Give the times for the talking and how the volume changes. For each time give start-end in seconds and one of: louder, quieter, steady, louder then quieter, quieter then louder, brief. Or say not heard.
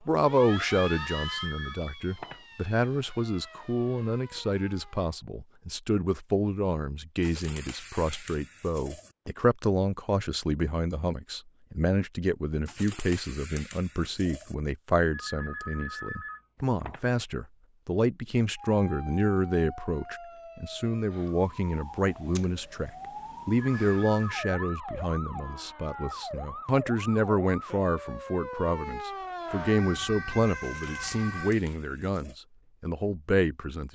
0.1-33.9 steady.